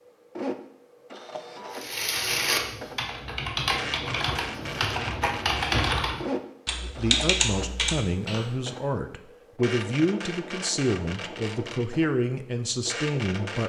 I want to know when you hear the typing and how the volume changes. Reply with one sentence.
The typing can be heard from 1.7 to 8.5 s, at a steady volume.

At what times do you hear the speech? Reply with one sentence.
You can hear the speech from 6.8 to 13.6 s.